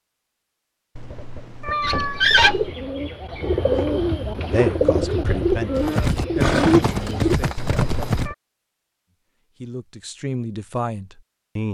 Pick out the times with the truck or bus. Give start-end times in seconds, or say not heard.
not heard.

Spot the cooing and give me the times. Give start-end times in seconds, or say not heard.
1.8-7.3.